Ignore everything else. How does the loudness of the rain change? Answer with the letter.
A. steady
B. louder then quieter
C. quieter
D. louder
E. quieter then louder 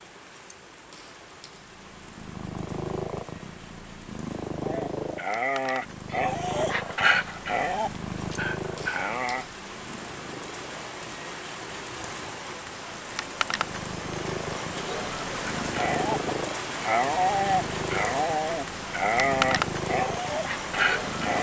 D.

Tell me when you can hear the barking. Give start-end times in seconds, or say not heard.
4.6-9.4, 15.6-21.3.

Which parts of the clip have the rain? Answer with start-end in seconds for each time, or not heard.
0.0-21.3.